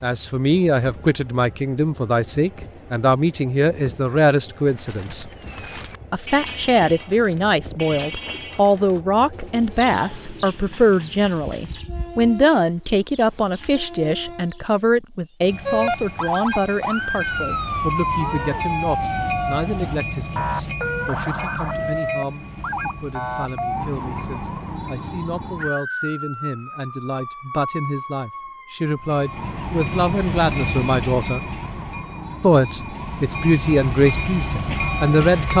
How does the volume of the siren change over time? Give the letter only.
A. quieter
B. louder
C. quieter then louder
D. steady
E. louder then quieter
A.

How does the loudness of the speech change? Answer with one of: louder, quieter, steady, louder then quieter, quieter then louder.
quieter then louder.